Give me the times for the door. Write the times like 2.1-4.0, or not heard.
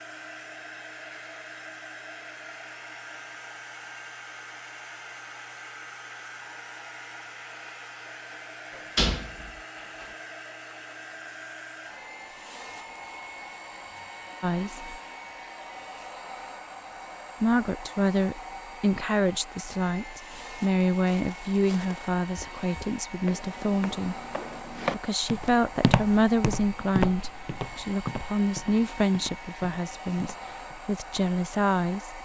8.7-10.1.